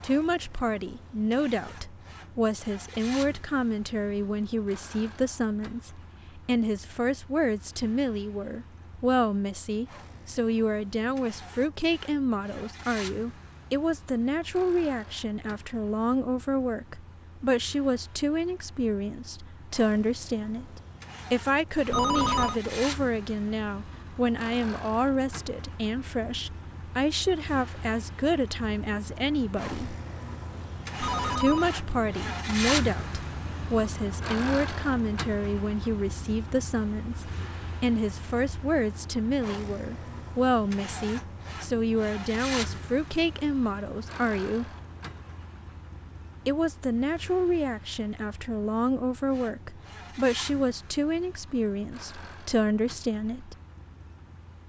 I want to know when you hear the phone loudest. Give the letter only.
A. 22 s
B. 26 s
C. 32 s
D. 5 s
A.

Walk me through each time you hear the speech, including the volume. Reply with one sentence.
You can hear the speech from 0.0 to 29.9 s, at a steady volume; from 31.4 to 44.7 s, at a steady volume; and from 46.5 to 53.5 s, at a steady volume.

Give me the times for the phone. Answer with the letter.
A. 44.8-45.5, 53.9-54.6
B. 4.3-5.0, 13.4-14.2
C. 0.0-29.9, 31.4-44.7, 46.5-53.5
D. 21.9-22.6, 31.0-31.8
D.